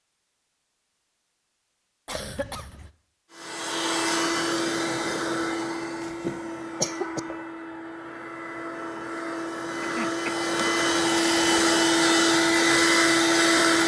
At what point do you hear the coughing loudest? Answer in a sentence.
The volume of the coughing peaks at 7 seconds.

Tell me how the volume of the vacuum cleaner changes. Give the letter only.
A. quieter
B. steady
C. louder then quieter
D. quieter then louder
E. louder
D.